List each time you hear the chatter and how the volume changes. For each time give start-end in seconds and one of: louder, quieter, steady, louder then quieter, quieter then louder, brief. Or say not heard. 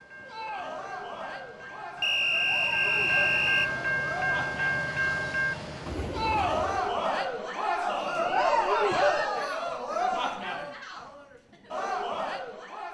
0.1-12.9 louder then quieter.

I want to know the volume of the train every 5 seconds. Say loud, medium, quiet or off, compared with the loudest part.
loud, loud, off.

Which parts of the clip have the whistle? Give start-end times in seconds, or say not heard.
2.0-3.7, 7.8-9.1.